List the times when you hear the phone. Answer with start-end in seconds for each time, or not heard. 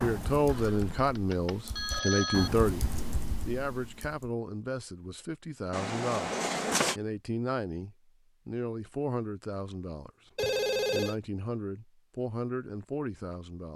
0.5-2.5, 5.7-7.0, 10.3-11.2.